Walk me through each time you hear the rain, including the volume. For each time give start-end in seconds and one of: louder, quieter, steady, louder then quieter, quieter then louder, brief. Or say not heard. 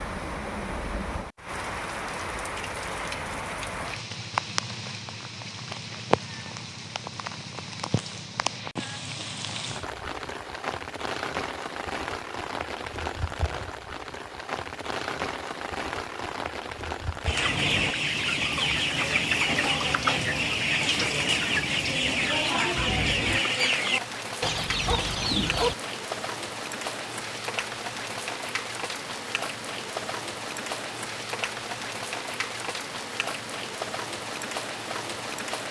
0.0-35.6 steady.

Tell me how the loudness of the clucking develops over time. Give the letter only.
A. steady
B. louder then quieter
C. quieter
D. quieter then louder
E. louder
A.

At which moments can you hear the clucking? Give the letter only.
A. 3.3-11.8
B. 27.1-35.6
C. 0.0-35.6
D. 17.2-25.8
D.